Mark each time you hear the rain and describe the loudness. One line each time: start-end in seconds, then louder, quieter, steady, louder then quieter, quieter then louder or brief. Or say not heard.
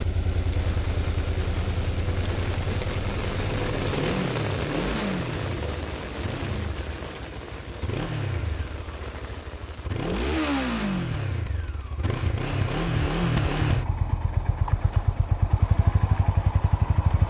0.0-9.9 louder then quieter.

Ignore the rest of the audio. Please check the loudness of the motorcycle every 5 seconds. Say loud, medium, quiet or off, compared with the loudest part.
medium, medium, loud, loud.